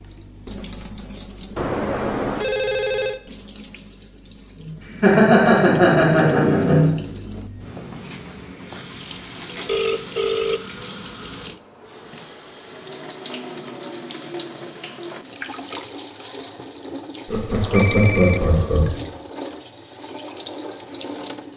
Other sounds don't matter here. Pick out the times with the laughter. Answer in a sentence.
The laughter can be heard from 4.5 to 6.9 s and from 17.2 to 18.9 s.